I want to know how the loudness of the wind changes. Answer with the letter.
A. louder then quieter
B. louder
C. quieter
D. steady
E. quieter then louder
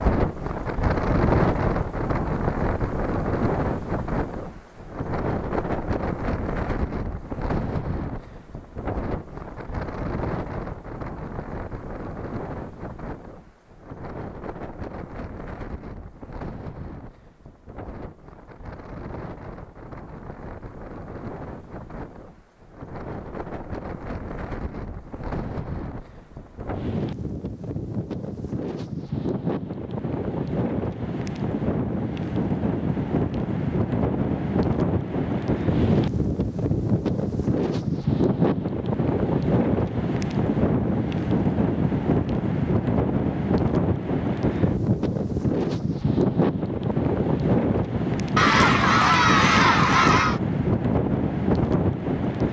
E.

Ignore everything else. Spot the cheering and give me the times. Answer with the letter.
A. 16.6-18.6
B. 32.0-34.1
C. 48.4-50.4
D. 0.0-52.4
C.